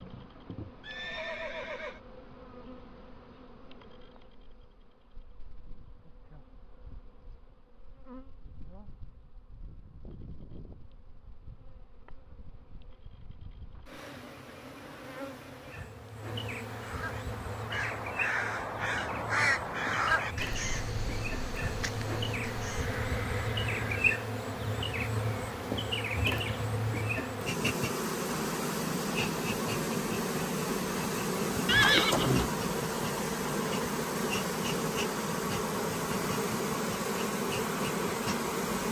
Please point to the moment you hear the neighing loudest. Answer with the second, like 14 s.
32 s.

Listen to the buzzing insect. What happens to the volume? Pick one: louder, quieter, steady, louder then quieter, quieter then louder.
louder.